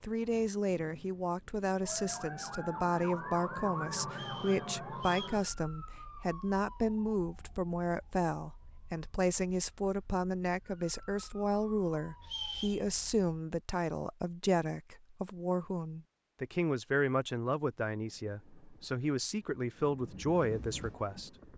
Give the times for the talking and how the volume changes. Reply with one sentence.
The talking can be heard from 0.0 to 21.3 s, at a steady volume.